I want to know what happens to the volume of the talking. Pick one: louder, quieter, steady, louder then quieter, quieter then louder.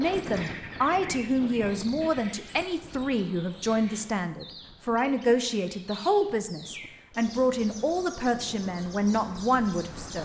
steady.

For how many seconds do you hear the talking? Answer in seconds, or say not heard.
10 s.